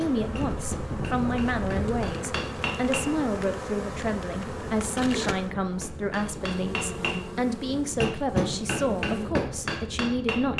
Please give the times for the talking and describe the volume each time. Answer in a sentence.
You can hear the talking from 0.0 to 10.5 s, at a steady volume.